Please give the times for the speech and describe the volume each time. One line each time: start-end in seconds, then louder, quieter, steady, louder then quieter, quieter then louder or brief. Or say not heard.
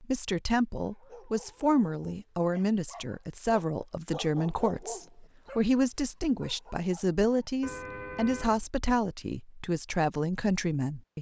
0.0-11.1 steady.